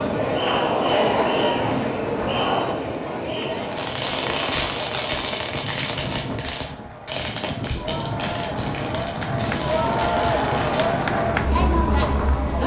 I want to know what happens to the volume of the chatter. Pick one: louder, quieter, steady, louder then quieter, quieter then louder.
quieter then louder.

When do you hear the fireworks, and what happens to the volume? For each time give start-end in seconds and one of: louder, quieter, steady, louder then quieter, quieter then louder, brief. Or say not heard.
3.5-11.2 quieter.